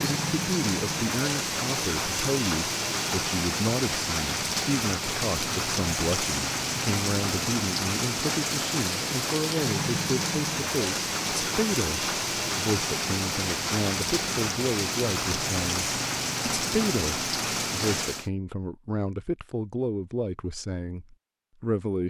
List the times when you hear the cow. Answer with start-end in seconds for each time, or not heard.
not heard.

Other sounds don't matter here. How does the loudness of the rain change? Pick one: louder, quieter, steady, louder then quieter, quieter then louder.
steady.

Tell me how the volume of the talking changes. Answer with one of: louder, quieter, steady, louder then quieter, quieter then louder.
steady.